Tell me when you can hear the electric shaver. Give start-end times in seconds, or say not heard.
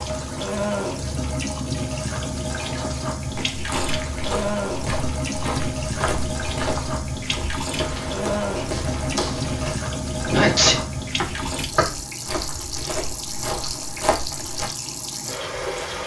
not heard.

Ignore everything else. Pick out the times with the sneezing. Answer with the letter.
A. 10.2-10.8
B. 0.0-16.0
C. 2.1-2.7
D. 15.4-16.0
A.